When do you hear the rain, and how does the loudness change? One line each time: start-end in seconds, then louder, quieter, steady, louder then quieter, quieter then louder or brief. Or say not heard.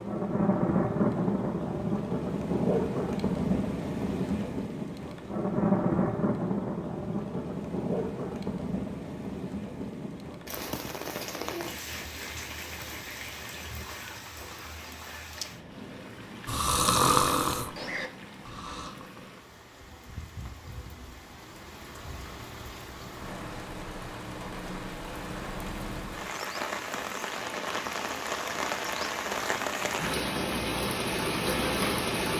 0.0-32.3 quieter then louder.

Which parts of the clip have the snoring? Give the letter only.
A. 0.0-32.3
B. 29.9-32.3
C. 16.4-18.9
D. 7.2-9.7
C.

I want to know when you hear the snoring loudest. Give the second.
17 s.